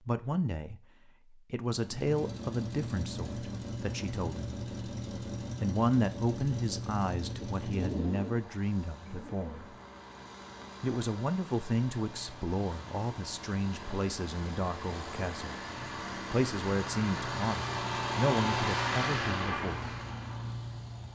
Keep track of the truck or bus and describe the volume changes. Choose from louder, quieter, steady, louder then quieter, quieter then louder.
quieter then louder.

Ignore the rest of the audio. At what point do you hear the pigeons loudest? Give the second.
8 s.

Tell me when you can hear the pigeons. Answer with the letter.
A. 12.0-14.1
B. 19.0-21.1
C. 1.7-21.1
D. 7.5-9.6
D.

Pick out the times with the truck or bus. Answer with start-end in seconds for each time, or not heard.
1.7-21.1.